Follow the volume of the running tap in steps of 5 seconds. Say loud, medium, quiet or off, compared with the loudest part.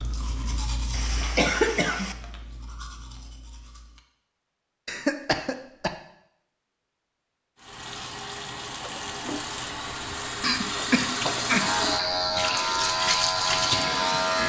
off, medium, loud.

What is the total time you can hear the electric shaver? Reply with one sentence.
The electric shaver can be heard for 3 seconds in total.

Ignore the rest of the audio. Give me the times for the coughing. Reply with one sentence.
You can hear the coughing from 0.9 to 2.1 s, from 4.8 to 5.9 s and from 10.4 to 11.7 s.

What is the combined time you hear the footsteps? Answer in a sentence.
The footsteps can't be heard in this clip.